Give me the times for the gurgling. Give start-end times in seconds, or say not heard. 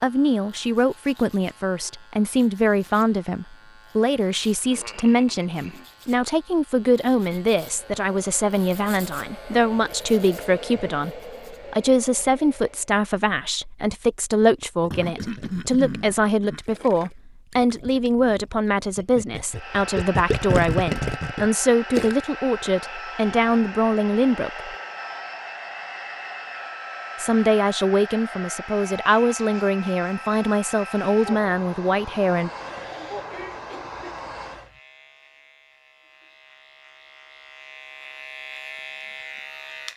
14.7-22.1.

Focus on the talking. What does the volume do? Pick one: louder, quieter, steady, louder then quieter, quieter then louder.
steady.